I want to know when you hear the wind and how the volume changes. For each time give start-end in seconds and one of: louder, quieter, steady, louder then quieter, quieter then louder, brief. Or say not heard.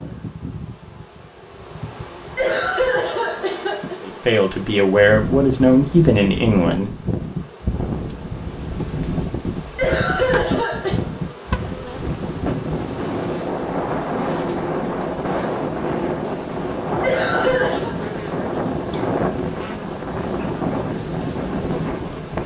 4.9-22.4 steady.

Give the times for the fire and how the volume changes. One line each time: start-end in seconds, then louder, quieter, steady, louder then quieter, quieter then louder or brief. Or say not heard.
not heard.